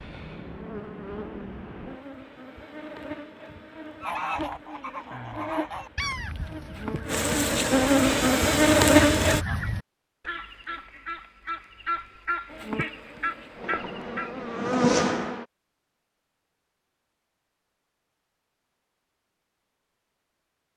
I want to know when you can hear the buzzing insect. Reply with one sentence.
The buzzing insect can be heard from 0.0 to 9.4 s and from 12.4 to 15.4 s.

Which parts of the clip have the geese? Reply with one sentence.
The geese can be heard from 4.0 to 14.5 s.